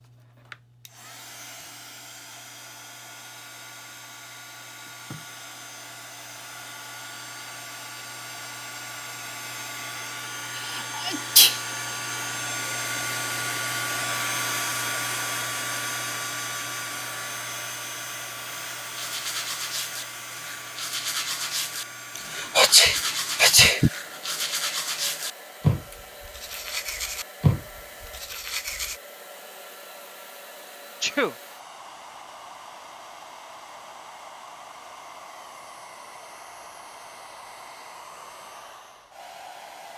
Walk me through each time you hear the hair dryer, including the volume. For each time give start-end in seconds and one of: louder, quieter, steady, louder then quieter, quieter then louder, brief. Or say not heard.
0.0-39.9 louder then quieter.